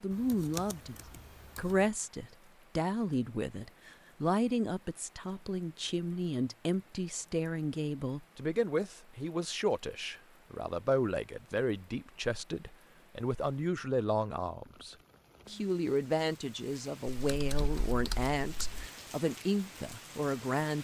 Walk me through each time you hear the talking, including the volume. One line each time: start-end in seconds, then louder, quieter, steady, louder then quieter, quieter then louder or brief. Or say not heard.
0.0-0.9 brief
1.6-20.8 steady.